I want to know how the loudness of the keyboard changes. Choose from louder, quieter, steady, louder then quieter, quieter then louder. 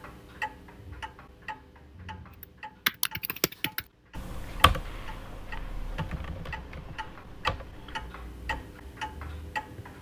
quieter then louder.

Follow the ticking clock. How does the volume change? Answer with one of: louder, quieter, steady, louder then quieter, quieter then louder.
quieter then louder.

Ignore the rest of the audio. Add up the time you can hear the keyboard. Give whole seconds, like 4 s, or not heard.
6 s.